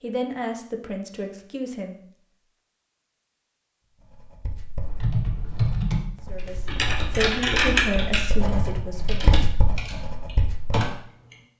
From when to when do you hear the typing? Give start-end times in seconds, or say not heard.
4.8-6.0, 6.7-11.3.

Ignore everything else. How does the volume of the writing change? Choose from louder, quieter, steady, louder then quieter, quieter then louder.
louder.